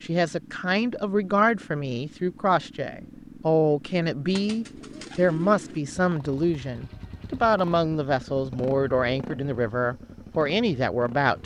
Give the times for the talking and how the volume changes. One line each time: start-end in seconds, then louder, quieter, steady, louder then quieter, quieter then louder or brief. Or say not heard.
0.0-11.4 steady.